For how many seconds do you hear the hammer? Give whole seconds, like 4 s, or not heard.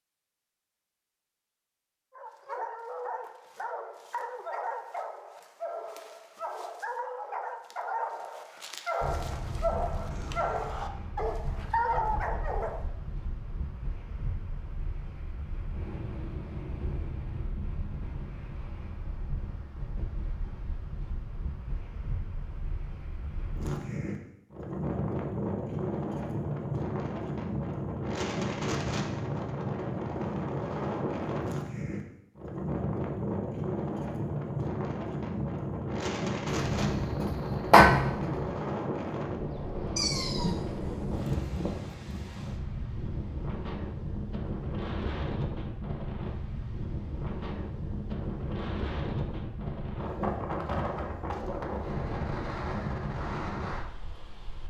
2 s.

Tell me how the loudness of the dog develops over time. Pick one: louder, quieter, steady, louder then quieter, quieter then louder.
louder.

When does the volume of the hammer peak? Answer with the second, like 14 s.
38 s.